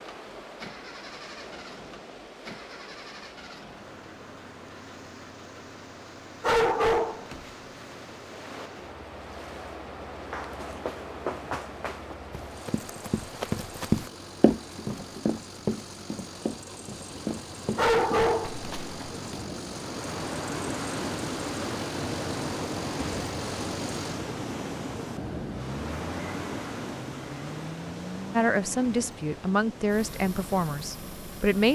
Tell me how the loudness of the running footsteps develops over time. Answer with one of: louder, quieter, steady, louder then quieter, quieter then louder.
louder then quieter.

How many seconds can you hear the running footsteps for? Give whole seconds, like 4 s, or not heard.
9 s.